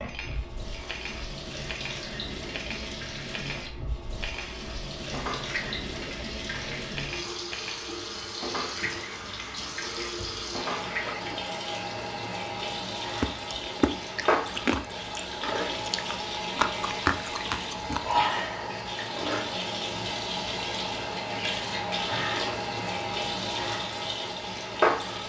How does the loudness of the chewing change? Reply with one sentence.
The loudness of the chewing goes down, then up.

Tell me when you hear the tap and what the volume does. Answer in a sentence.
The tap can be heard from 0.0 to 25.2 s, getting louder.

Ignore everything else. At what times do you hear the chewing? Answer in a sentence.
You can hear the chewing from 13.2 to 18.1 s.